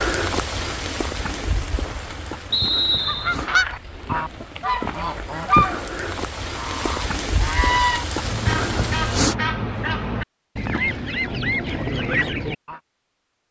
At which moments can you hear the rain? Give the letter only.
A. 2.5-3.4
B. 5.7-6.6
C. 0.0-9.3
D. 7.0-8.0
C.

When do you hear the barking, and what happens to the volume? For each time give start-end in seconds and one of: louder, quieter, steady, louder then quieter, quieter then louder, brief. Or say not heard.
not heard.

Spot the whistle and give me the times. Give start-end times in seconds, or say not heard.
2.5-3.4.